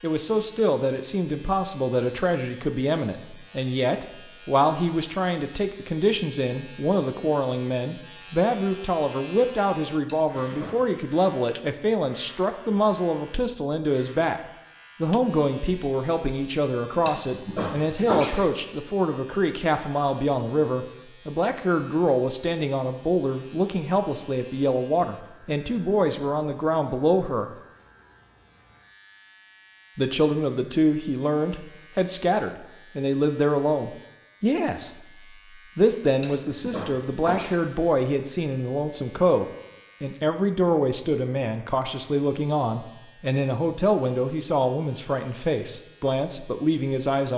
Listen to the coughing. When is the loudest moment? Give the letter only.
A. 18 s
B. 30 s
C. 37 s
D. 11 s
A.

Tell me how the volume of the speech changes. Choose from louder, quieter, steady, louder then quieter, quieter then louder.
steady.